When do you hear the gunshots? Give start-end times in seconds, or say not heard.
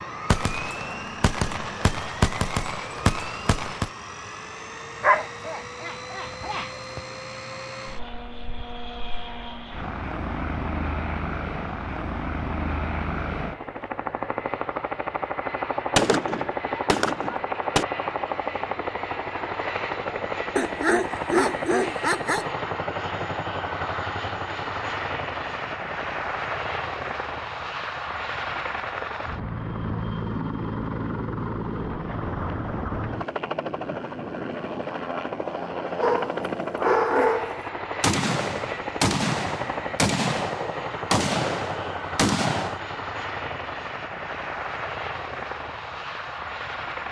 0.3-3.9, 15.9-17.9, 38.0-42.8.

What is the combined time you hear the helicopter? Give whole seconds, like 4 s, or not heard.
47 s.